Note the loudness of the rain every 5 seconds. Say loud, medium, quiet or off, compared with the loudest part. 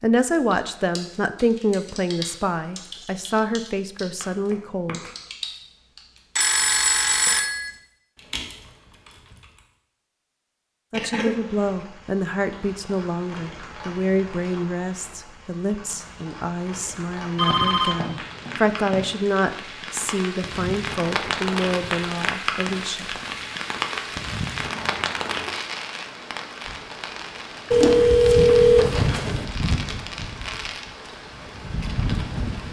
off, off, quiet, medium, loud, loud, loud.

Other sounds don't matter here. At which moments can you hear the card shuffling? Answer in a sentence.
You can't hear the card shuffling here.